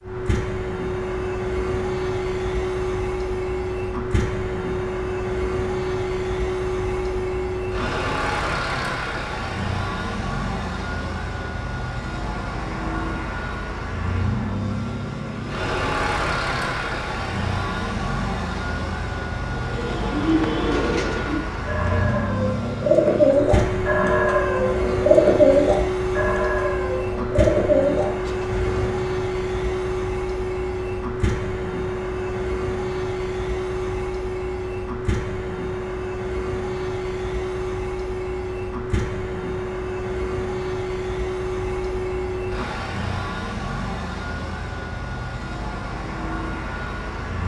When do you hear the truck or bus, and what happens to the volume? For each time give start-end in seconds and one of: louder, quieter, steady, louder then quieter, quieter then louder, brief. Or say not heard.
0.0-47.4 steady.